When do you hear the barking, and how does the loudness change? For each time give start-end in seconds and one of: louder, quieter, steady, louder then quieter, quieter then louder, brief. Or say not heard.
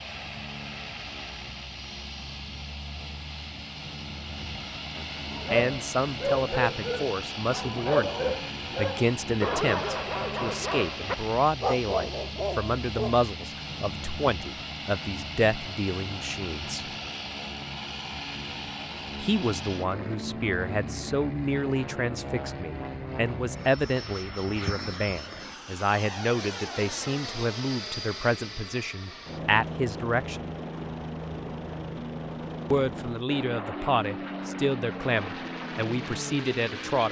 5.2-13.2 steady.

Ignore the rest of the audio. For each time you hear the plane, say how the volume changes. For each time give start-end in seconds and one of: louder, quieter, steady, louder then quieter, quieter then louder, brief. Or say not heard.
0.0-37.0 steady.